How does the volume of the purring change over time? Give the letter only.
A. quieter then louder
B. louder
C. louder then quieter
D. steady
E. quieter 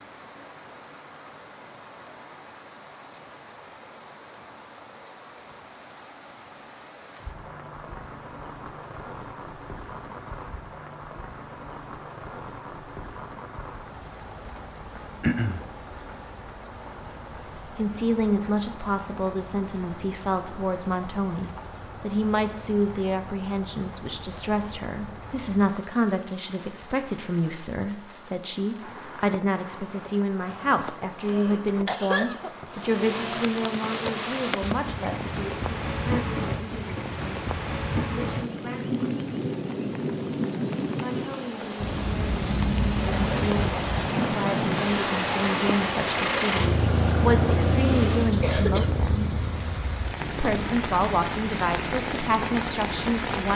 E.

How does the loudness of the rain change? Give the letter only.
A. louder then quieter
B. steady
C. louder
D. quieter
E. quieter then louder
C.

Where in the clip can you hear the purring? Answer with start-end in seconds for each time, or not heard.
41.8-53.5.